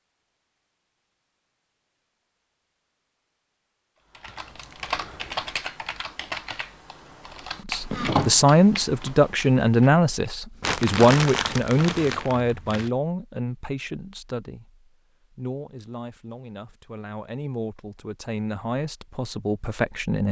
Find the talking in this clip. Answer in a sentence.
The talking can be heard from 7.7 to 20.2 s.